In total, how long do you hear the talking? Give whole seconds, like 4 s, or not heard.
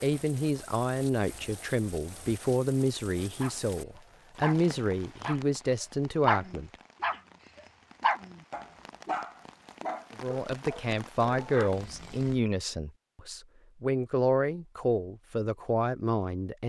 13 s.